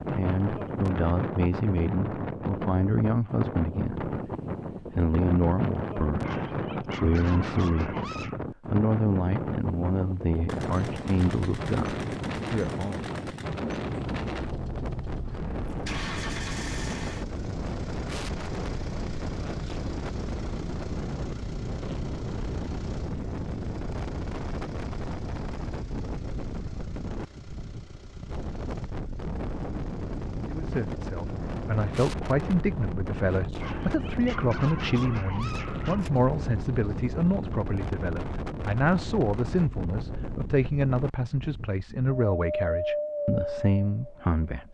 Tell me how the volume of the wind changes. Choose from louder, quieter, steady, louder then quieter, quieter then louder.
steady.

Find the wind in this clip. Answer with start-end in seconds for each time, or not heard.
0.0-44.4.